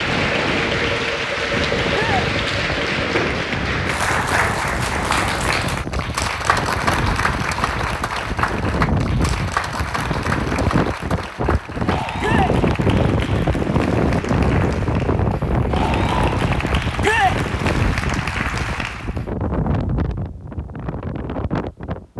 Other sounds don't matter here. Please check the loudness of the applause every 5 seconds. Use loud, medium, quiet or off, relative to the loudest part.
loud, loud, medium, medium, off.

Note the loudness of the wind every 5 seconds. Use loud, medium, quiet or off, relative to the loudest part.
medium, medium, loud, loud, medium.